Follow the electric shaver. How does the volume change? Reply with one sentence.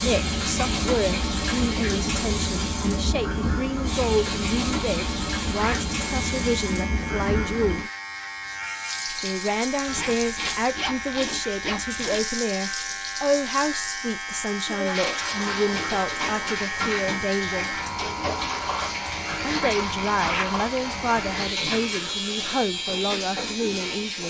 The volume of the electric shaver goes up.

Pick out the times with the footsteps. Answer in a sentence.
The footsteps can't be heard in this clip.